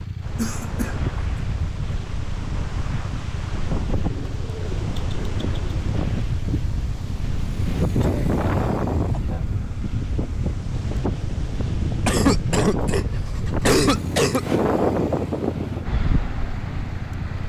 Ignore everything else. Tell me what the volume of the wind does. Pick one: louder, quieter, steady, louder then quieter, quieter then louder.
louder.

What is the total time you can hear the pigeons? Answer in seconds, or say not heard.
2 s.